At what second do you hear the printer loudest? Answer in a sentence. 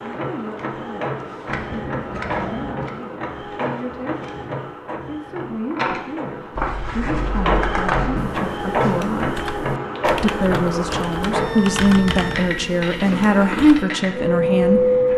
The loudest moment of the printer is at 15 seconds.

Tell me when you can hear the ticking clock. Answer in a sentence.
You can't hear the ticking clock here.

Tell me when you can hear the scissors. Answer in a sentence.
You can hear the scissors from 1.4 to 3.0 s, from 6.5 to 8.2 s and from 11.8 to 12.4 s.